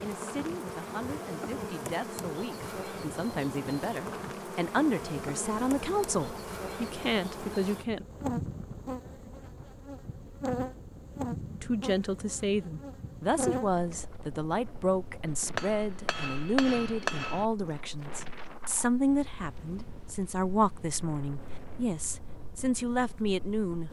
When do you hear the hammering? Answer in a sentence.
The hammering can be heard from 15.6 to 17.4 s.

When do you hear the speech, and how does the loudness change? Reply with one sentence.
The speech can be heard from 0.0 to 8.1 s, getting louder; and from 11.6 to 23.8 s, at a steady volume.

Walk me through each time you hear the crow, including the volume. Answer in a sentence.
The crow can't be heard in this clip.